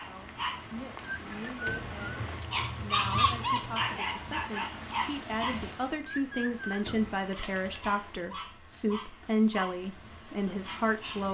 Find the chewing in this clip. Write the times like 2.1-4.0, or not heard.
not heard.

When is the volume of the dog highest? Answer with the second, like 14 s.
3 s.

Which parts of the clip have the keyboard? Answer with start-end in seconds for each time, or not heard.
1.9-4.0, 7.3-7.8.